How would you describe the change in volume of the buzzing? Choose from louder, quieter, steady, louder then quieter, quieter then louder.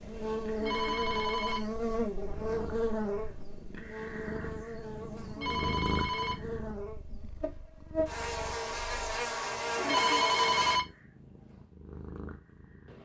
quieter then louder.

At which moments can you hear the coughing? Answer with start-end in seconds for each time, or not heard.
not heard.